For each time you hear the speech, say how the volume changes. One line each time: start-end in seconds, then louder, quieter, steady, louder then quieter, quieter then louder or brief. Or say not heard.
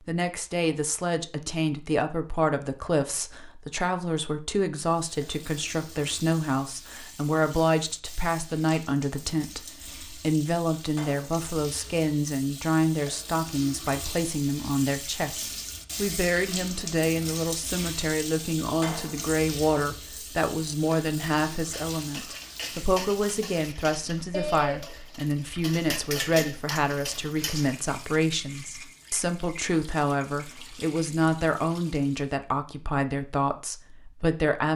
0.1-34.7 steady.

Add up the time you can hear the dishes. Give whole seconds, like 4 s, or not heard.
6 s.